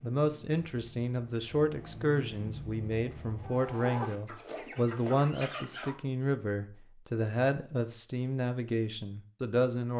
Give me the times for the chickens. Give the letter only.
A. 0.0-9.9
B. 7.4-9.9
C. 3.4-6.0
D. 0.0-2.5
C.